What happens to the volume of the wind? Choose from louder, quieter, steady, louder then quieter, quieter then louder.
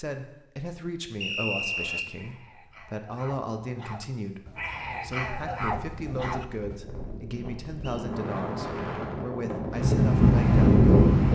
louder.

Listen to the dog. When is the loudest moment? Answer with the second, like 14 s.
6 s.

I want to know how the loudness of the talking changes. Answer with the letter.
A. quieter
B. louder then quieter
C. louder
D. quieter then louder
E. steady
E.